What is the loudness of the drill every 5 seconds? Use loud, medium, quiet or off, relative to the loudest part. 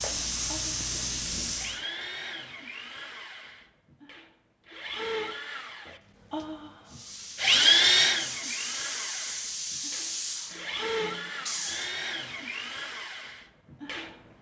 quiet, loud, medium.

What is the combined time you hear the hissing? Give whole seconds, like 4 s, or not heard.
7 s.